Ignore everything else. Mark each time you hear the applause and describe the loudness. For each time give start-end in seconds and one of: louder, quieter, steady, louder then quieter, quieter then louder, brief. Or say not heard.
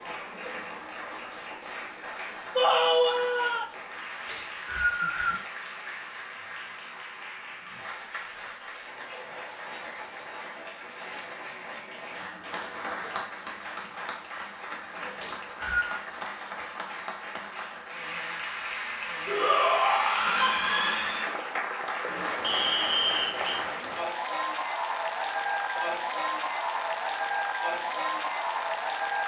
0.0-29.2 louder.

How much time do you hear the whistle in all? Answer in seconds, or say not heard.
3 s.